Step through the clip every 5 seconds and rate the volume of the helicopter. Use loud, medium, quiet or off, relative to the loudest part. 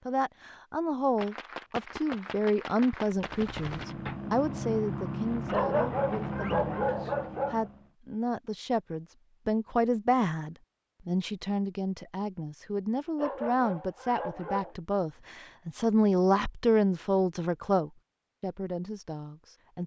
loud, loud, off, off.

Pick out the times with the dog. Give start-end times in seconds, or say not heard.
5.5-7.7, 13.2-14.8.